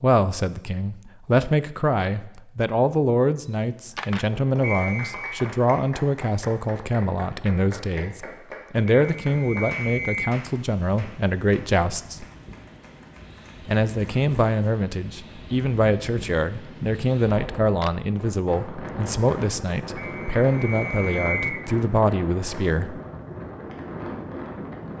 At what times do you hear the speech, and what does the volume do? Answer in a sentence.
You can hear the speech from 0.0 to 12.2 s, at a steady volume; and from 13.7 to 23.0 s, at a steady volume.